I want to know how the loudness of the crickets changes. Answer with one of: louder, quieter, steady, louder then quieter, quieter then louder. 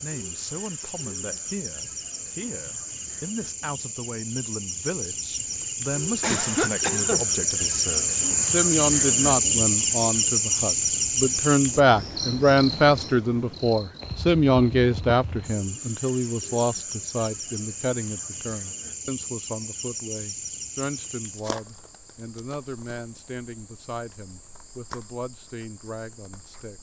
louder then quieter.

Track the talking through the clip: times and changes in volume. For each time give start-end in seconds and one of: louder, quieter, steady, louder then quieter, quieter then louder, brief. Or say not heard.
0.0-26.7 louder then quieter.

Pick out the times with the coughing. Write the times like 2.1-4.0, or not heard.
6.2-7.2.